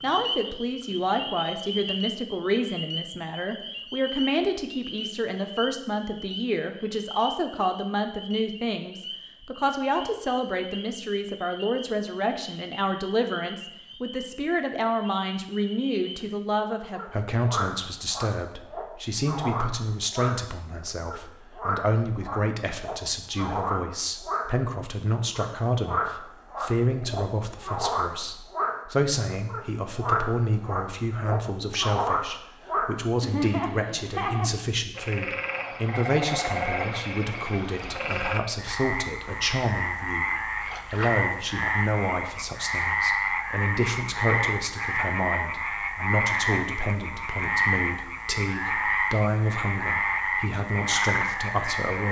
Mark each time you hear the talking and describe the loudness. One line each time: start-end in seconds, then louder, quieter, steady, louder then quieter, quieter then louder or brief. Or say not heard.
0.0-52.0 steady.